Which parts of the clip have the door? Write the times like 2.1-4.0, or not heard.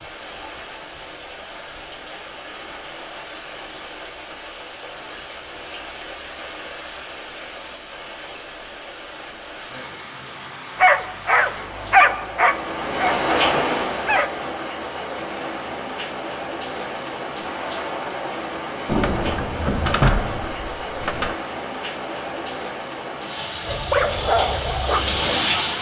18.9-21.4.